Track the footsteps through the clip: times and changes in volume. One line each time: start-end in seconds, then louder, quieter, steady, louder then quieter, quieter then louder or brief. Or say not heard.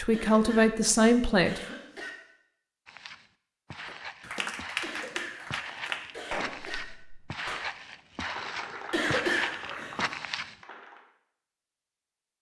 2.9-10.6 louder.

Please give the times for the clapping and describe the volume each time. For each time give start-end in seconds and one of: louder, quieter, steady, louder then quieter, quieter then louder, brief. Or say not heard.
3.9-11.1 quieter.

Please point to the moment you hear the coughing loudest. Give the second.
9 s.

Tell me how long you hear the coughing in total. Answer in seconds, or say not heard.
5 s.